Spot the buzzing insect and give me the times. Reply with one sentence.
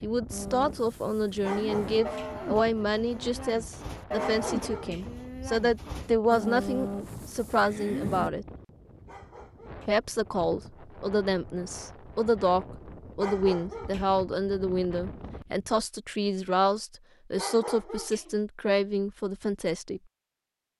The buzzing insect can't be heard in this clip.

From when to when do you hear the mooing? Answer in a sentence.
You can hear the mooing from 0.3 to 8.3 s.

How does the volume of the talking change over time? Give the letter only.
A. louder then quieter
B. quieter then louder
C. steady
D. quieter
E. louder
C.